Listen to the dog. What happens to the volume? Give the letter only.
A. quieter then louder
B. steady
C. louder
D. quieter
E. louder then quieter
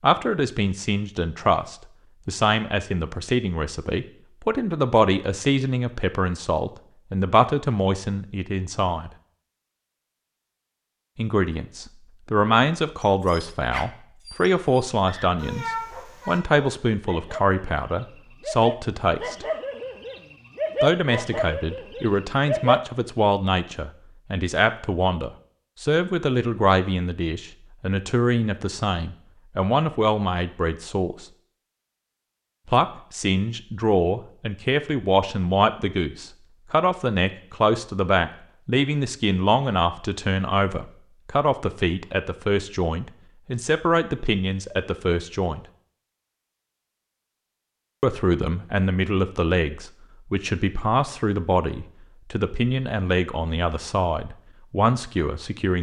C.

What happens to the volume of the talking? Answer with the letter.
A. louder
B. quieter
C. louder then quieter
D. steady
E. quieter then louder
D.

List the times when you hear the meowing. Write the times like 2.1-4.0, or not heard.
15.4-16.4.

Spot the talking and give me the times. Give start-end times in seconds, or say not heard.
0.0-9.1, 11.2-19.4, 20.8-31.2, 32.6-45.6, 48.0-55.7.